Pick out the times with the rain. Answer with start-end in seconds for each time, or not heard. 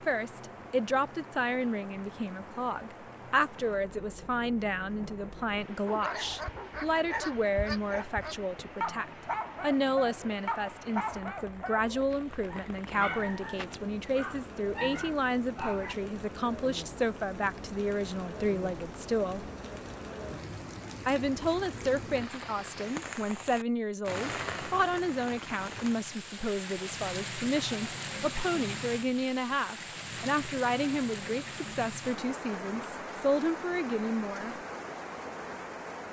0.0-36.0.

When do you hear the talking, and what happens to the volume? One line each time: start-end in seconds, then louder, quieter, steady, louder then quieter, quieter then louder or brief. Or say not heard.
0.0-19.5 steady
21.1-34.5 steady.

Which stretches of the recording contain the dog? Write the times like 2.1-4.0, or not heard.
5.8-15.9.